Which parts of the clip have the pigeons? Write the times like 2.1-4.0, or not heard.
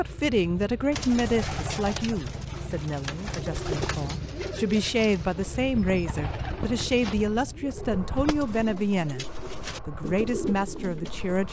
0.9-11.4.